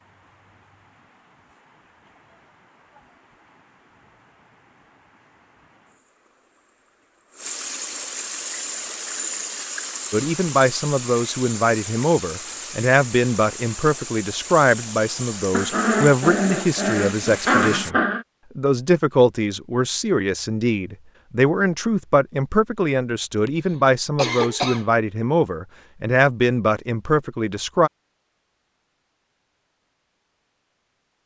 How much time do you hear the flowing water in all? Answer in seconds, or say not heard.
18 s.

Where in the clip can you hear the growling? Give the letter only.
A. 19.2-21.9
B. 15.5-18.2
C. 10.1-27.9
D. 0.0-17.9
B.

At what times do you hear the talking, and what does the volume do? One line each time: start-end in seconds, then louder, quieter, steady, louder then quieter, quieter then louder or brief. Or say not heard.
10.1-27.9 steady.